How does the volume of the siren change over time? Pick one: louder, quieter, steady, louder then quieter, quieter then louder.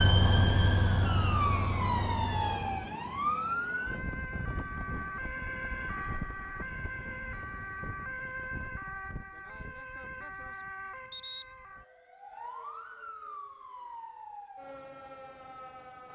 quieter.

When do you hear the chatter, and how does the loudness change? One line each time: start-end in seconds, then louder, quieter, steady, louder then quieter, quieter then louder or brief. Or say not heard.
not heard.